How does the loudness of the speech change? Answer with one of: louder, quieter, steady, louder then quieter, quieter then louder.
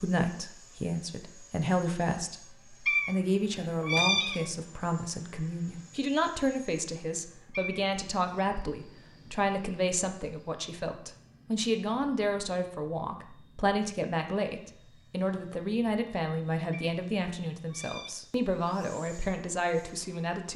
steady.